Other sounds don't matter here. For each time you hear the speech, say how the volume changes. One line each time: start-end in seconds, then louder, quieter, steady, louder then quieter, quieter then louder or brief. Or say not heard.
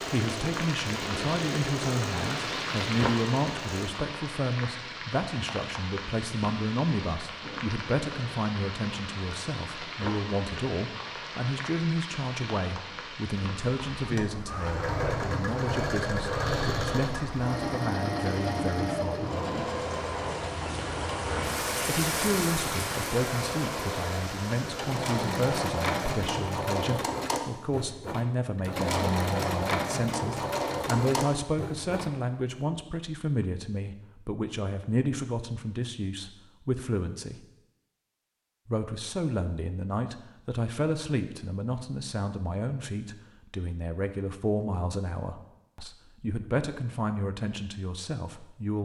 0.1-19.6 steady
21.9-37.4 steady
38.6-48.8 steady.